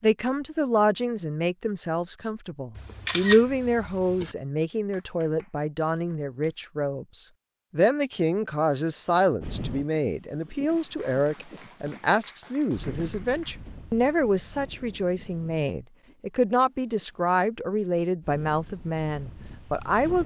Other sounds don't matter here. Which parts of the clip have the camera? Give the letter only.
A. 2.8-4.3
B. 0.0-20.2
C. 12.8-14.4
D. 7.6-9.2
A.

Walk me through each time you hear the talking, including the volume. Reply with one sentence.
The talking can be heard from 0.0 to 20.2 s, at a steady volume.